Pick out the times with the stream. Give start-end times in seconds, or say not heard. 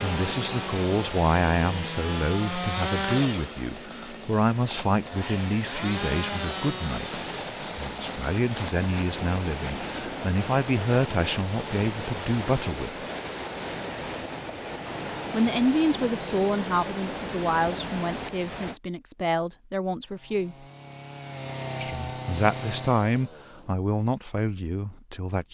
0.0-18.8.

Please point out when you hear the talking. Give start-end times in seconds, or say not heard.
0.0-12.9, 15.3-20.6, 21.8-25.5.